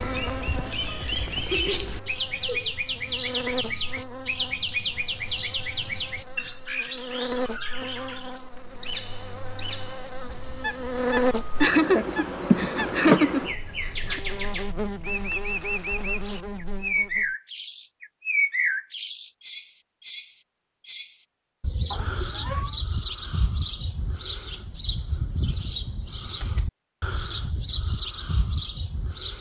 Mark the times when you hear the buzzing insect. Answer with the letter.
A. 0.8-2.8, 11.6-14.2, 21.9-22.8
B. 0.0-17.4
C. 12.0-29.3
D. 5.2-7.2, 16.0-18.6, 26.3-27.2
B.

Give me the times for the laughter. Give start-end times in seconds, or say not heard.
0.8-2.8, 11.6-14.2, 21.9-22.8.